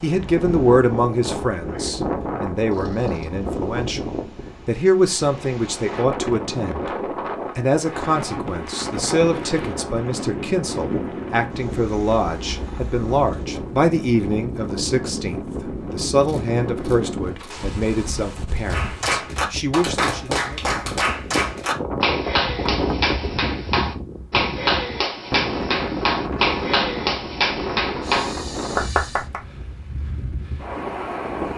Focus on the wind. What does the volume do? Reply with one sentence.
The loudness of the wind stays about the same.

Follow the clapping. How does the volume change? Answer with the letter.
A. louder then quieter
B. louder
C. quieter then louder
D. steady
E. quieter
D.